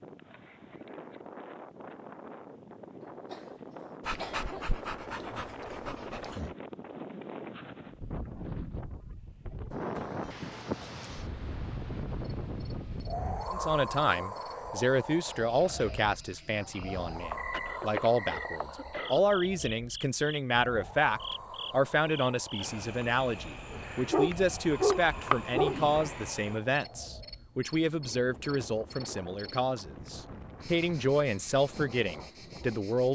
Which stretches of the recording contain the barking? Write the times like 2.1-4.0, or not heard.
4.0-6.5, 23.7-25.9.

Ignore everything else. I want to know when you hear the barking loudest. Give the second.
25 s.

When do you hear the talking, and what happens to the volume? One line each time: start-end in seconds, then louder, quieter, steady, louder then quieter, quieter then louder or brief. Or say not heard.
13.5-33.1 steady.